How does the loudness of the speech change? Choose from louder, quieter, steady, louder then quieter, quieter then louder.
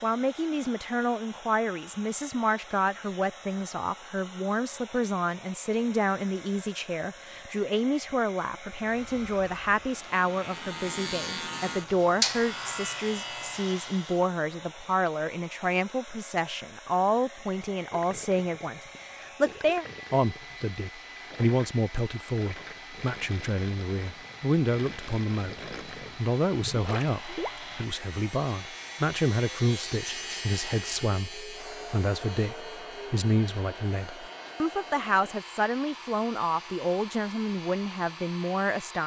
steady.